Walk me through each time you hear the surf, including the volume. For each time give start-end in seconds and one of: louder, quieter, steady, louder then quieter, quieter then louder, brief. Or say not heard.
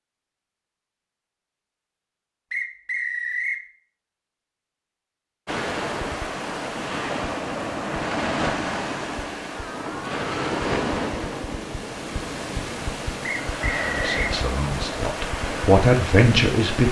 5.5-16.8 steady.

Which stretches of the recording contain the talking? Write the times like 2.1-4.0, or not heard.
13.8-16.8.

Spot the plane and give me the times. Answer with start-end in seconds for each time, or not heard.
not heard.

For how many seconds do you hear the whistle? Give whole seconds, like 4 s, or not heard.
2 s.